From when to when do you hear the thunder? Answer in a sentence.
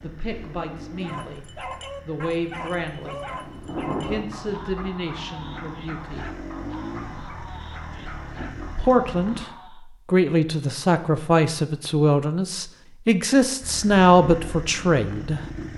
You can hear the thunder from 3.1 to 4.2 s.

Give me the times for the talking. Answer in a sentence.
The talking can be heard from 0.0 to 1.4 s, from 2.0 to 3.2 s, from 4.0 to 6.2 s and from 8.8 to 15.4 s.